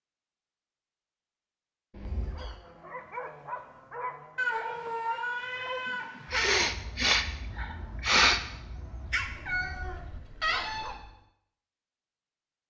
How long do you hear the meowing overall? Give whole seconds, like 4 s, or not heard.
5 s.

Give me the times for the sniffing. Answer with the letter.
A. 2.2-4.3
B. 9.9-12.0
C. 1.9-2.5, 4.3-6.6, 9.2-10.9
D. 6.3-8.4
D.